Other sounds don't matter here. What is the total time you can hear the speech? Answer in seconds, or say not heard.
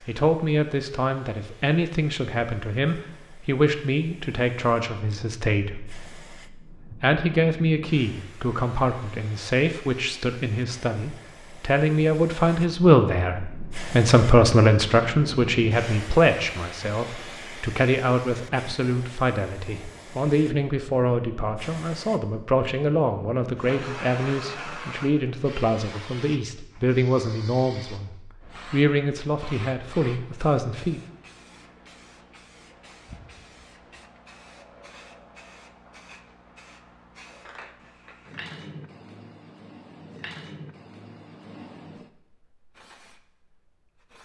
30 s.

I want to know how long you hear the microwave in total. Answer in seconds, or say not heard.
not heard.